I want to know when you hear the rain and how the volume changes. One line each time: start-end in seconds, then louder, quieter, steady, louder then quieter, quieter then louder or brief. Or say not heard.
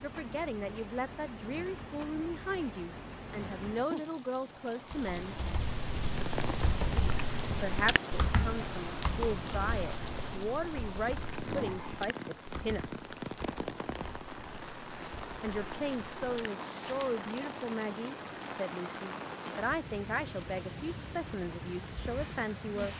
0.0-22.9 steady.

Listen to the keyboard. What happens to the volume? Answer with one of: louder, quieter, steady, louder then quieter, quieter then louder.
quieter.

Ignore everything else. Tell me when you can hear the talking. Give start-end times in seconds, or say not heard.
0.0-5.4, 7.6-12.8, 15.4-22.9.